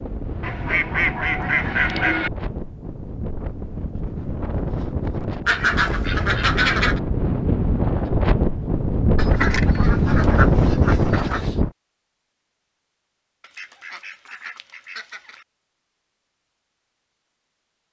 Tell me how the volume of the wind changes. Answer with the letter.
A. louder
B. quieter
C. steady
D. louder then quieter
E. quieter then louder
A.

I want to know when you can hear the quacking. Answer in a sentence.
You can hear the quacking from 0.4 to 2.3 s, from 5.5 to 7.0 s, from 9.2 to 11.6 s and from 13.4 to 15.4 s.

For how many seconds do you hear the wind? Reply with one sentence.
You can hear the wind for 12 seconds altogether.